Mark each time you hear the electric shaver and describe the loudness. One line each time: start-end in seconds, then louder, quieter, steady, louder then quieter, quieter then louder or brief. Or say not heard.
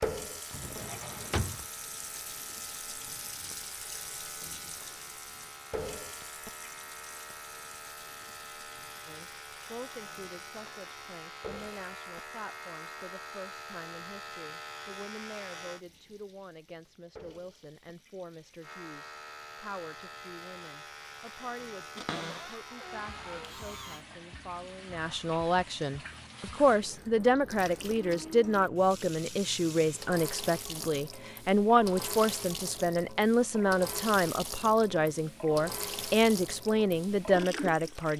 0.0-15.8 louder
18.6-24.1 steady.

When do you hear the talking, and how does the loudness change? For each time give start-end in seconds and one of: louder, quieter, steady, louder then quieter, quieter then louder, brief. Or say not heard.
9.1-38.1 louder.